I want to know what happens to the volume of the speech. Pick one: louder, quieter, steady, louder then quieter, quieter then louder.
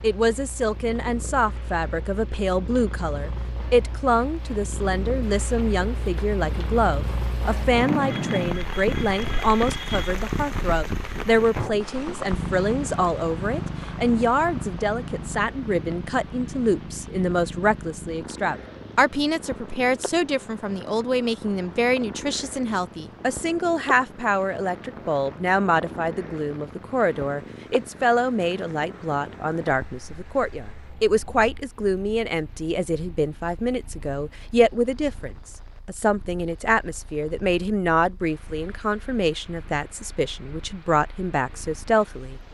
steady.